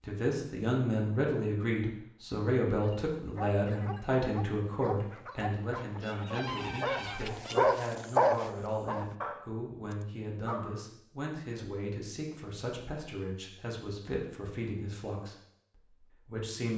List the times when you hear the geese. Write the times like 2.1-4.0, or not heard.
5.8-7.7.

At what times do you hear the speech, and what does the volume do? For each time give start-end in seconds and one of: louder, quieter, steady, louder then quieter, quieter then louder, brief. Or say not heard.
0.0-16.7 quieter.